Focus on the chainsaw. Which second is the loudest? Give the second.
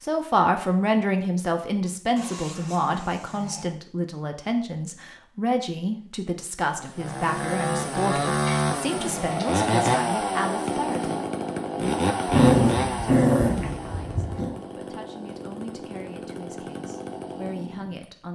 10 s.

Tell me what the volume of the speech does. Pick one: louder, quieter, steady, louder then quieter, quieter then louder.
quieter.